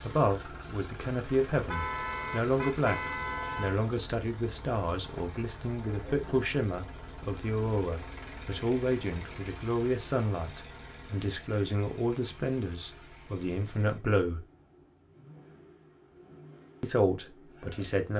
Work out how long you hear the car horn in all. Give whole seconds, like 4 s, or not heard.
2 s.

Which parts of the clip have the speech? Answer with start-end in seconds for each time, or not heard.
0.0-14.4, 16.8-18.1.